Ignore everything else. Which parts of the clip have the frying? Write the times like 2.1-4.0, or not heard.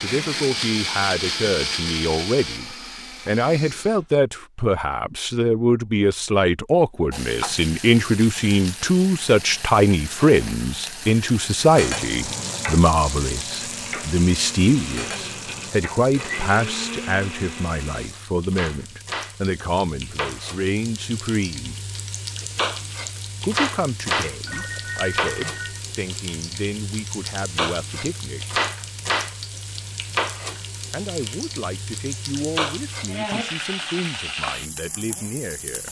7.1-35.8.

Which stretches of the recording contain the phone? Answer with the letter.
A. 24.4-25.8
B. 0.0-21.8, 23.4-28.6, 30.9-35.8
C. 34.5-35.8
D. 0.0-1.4
A.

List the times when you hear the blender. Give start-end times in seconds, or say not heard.
0.0-4.0, 13.5-18.1.